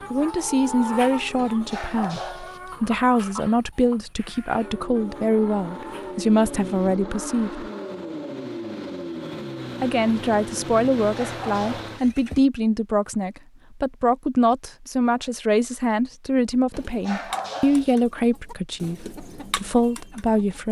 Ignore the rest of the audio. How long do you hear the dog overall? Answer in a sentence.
You can hear the dog for 3 seconds altogether.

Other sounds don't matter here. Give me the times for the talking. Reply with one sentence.
You can hear the talking from 0.1 to 7.7 s and from 9.8 to 20.6 s.